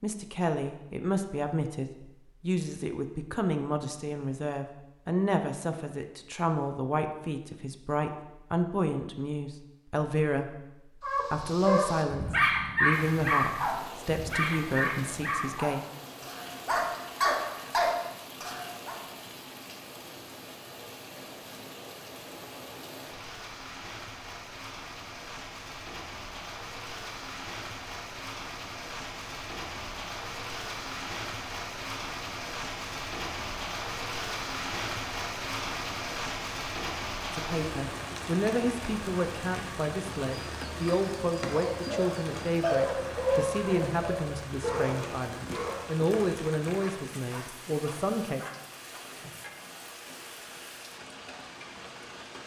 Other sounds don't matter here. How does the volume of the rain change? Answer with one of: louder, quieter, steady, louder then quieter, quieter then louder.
louder then quieter.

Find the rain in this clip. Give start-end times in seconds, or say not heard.
12.9-52.4.